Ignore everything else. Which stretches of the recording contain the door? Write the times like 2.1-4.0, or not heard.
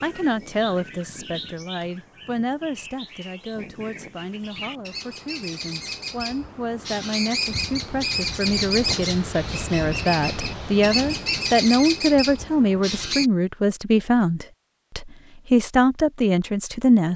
not heard.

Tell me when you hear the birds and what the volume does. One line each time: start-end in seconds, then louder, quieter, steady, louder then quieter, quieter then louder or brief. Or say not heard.
0.0-13.3 louder.